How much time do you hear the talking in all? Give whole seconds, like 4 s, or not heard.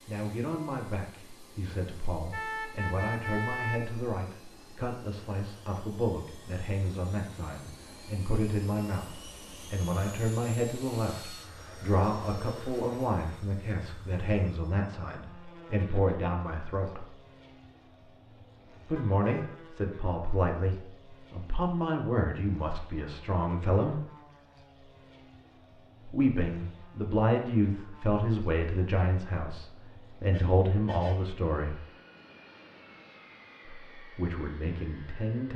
30 s.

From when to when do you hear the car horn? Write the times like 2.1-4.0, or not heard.
2.3-4.1, 18.9-19.5, 30.3-31.4.